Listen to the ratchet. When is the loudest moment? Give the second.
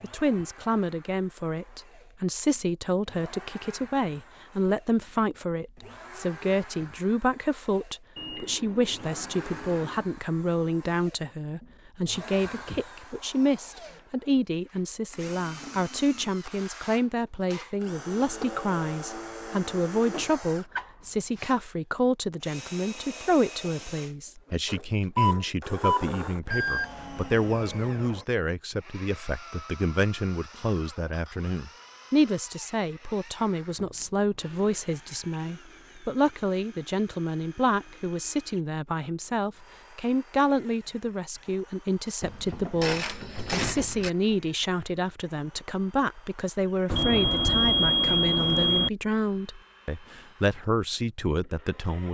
44 s.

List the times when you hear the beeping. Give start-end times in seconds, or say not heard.
8.2-10.1, 25.1-26.9, 46.9-48.9.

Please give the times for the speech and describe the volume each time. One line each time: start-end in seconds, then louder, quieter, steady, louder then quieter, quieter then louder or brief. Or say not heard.
0.0-52.0 steady.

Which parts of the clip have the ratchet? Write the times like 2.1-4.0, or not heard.
42.2-44.1.